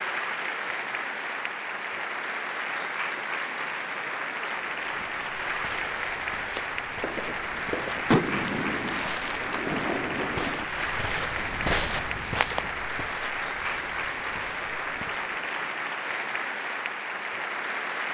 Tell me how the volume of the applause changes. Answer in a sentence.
The volume of the applause stays about the same.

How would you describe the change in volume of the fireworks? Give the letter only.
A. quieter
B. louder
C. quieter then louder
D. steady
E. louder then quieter
E.